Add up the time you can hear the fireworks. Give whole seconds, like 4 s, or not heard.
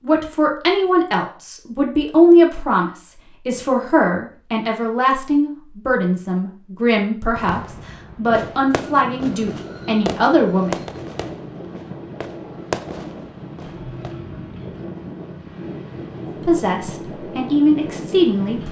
7 s.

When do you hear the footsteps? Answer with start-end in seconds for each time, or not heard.
not heard.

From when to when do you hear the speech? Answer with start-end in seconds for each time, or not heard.
0.0-10.8, 16.4-18.6.